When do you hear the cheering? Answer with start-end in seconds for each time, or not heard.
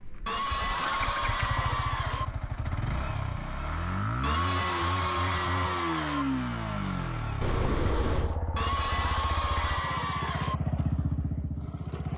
0.2-2.2, 4.2-6.2, 8.6-10.6.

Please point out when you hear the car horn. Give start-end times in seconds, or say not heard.
7.4-8.4.